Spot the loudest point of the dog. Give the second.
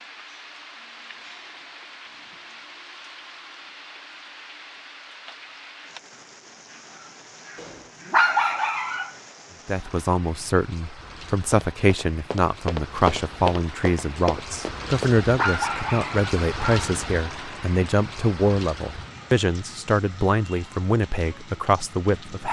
8 s.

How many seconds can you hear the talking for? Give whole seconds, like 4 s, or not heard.
13 s.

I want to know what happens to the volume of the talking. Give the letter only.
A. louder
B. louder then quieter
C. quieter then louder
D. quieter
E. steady
E.